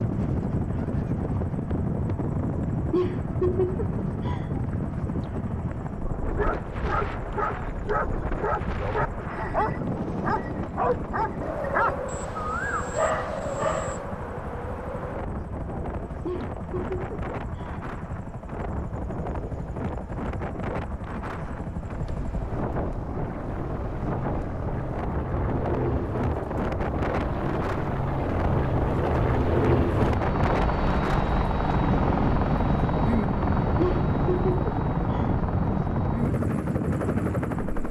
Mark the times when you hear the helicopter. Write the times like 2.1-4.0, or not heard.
0.0-37.8.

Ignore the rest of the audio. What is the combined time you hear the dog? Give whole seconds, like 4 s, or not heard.
8 s.